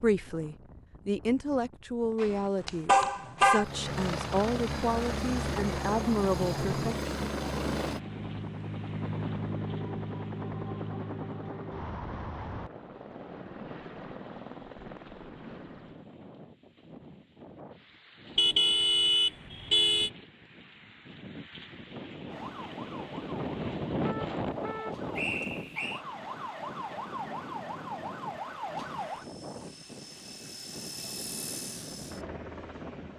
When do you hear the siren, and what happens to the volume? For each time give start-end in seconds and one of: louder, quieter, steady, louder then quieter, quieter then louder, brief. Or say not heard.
22.2-29.6 louder.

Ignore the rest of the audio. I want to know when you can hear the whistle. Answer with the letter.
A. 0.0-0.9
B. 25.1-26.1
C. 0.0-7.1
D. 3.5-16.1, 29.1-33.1
B.